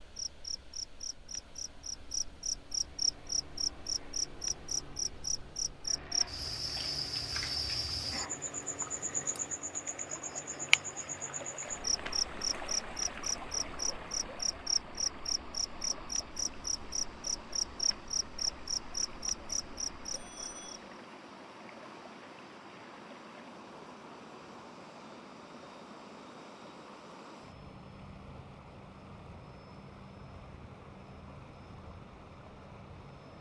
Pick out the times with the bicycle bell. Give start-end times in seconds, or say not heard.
20.1-20.8.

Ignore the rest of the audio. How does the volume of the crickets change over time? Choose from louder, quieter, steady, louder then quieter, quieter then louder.
steady.